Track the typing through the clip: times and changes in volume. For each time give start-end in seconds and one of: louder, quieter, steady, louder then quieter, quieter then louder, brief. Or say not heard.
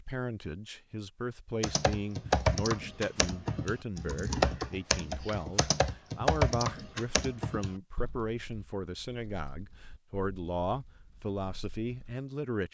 1.6-12.2 quieter.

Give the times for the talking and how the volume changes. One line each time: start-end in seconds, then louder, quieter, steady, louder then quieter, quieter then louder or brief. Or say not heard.
0.0-12.7 steady.